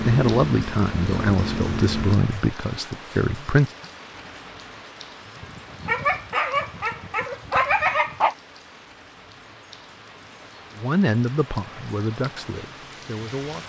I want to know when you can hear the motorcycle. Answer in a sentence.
The motorcycle can be heard from 0.0 to 2.2 s.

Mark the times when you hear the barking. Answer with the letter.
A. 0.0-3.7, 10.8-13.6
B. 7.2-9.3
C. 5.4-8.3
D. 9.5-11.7
C.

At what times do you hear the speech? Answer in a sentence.
The speech can be heard from 0.0 to 3.7 s and from 10.8 to 13.6 s.